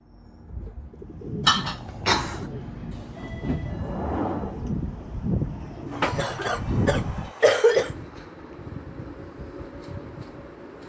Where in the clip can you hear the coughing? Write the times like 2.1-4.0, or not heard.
1.4-2.5, 5.9-7.9.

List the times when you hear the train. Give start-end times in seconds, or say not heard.
0.0-10.8.